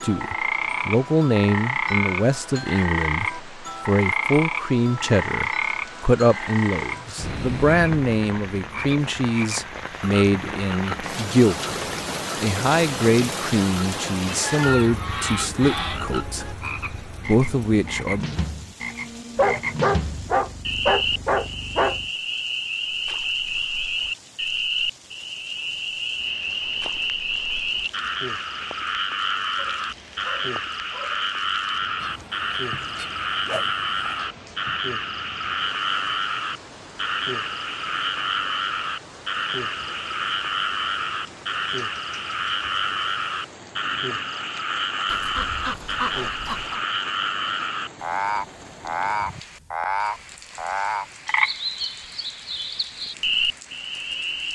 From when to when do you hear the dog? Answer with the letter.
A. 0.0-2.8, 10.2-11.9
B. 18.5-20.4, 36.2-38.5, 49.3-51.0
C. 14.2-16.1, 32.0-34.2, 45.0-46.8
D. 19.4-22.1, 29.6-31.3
D.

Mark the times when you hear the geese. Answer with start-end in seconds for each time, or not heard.
14.2-16.1, 32.0-34.2, 45.0-46.8.